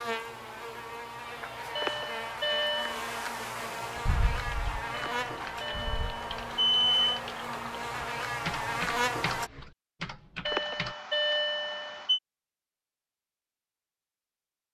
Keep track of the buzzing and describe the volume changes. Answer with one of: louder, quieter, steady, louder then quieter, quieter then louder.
louder.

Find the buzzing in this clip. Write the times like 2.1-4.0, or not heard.
0.0-9.5.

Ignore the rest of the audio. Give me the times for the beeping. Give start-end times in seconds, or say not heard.
1.8-3.0, 4.9-7.2, 10.4-12.2.